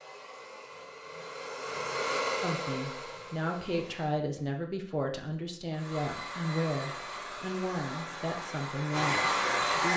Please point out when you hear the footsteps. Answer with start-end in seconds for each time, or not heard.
not heard.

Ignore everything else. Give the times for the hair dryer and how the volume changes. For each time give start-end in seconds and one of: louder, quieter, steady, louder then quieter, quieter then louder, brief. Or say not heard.
0.0-4.2 louder then quieter
5.7-9.9 louder.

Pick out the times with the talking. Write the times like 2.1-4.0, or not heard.
2.4-9.9.